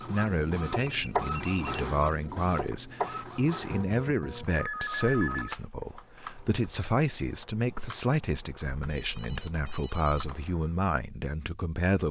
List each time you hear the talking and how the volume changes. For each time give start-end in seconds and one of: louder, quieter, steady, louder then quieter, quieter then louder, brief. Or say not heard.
0.0-12.0 steady.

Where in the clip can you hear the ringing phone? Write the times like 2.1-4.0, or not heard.
0.8-1.8, 4.5-5.5, 8.8-10.2.